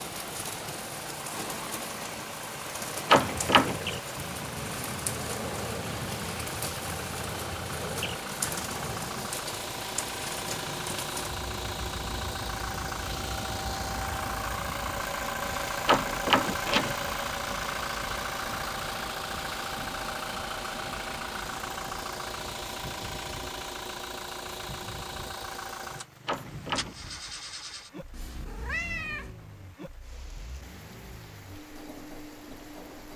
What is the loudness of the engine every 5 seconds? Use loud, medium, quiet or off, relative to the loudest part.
medium, medium, loud, loud, loud, medium, quiet.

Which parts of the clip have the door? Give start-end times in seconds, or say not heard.
3.1-3.8, 15.8-16.9, 26.2-27.1.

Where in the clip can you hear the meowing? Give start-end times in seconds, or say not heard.
28.1-29.3.